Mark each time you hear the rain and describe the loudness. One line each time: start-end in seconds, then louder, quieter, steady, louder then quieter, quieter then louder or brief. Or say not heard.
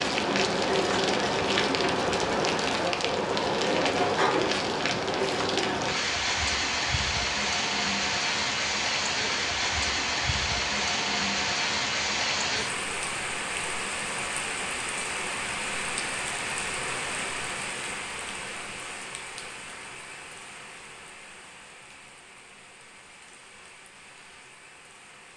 0.0-25.3 quieter.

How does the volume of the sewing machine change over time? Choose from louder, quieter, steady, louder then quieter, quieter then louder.
steady.